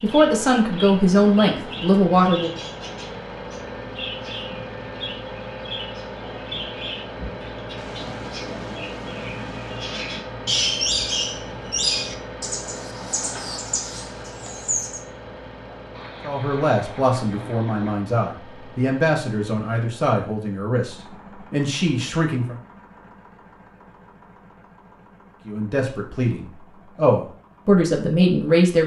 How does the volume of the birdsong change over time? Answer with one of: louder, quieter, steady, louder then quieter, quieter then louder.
louder.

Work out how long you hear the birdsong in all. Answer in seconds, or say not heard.
15 s.